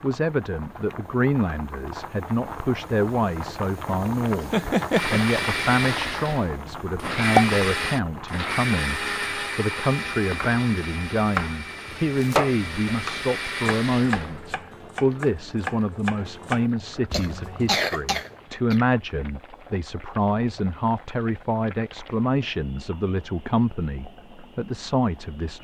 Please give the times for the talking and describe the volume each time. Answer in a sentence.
You can hear the talking from 0.0 to 25.5 s, at a steady volume.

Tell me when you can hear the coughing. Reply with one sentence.
The coughing can be heard from 4.5 to 5.2 s and from 17.1 to 18.8 s.